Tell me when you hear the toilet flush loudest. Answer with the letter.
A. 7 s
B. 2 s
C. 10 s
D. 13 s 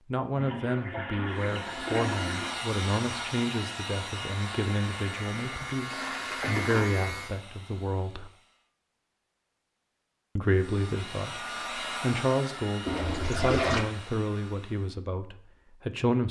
D.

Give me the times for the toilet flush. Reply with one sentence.
The toilet flush can be heard from 0.3 to 2.5 s, from 5.9 to 6.9 s and from 12.8 to 13.8 s.